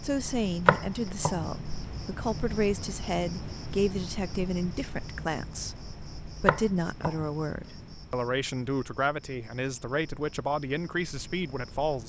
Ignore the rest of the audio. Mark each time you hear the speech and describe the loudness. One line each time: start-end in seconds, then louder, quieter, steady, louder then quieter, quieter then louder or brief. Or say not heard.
0.0-12.0 steady.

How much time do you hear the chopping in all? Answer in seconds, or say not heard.
3 s.